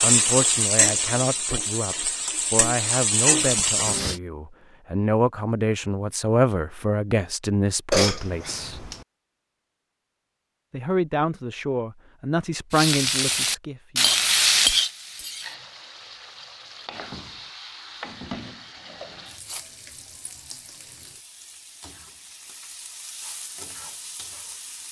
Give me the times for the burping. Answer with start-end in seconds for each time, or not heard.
7.9-9.1.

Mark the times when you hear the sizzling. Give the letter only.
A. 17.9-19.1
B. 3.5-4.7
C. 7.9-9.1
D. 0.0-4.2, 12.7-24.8
D.